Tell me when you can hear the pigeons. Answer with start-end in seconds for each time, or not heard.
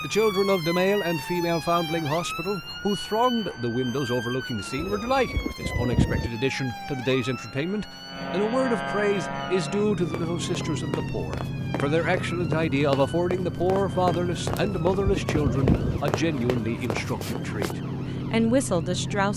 4.8-6.3, 14.5-16.0.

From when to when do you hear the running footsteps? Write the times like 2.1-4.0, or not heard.
10.0-17.8.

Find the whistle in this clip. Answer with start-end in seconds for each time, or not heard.
not heard.